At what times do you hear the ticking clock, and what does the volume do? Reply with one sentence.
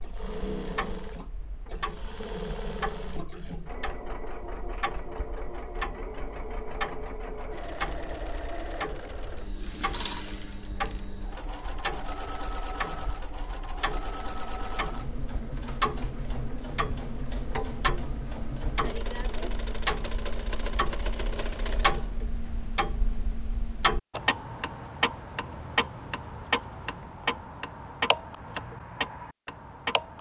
You can hear the ticking clock from 0.0 to 30.1 s, getting louder.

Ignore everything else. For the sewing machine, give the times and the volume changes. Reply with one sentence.
You can hear the sewing machine from 0.0 to 22.2 s, at a steady volume.